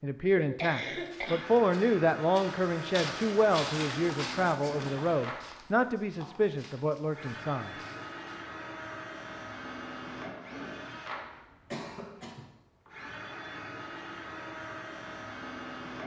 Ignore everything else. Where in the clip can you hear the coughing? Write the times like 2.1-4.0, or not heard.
0.3-1.6, 11.3-12.5.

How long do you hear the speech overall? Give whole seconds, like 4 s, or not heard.
8 s.